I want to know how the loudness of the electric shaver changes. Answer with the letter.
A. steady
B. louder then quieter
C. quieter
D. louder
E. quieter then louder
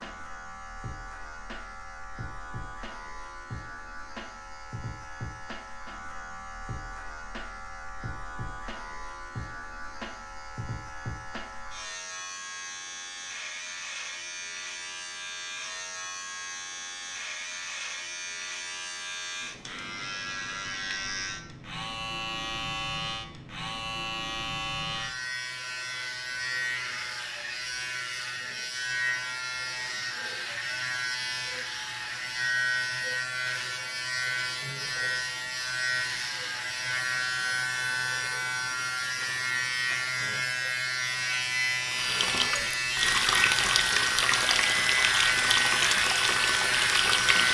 D.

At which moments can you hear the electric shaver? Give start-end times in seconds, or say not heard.
0.0-47.4.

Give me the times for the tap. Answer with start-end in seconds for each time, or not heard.
41.9-47.4.